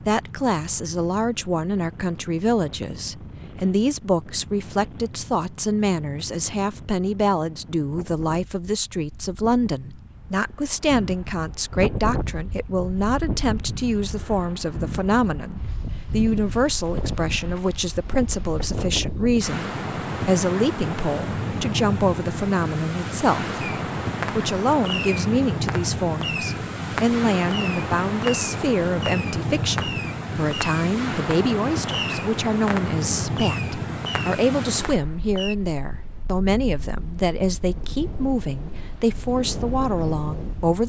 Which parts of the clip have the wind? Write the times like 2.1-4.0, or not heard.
0.0-40.8.